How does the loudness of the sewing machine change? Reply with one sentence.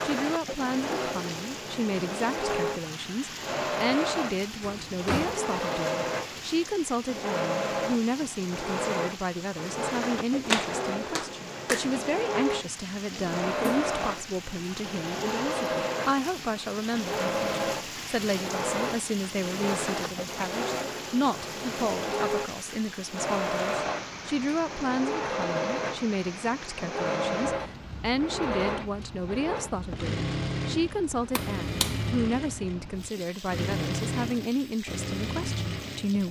The volume of the sewing machine stays about the same.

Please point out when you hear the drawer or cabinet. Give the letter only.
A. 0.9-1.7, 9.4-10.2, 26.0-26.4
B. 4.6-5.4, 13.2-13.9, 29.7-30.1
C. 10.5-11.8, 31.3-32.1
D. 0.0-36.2
B.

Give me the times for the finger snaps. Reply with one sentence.
You can hear the finger snaps from 10.5 to 11.8 s and from 31.3 to 32.1 s.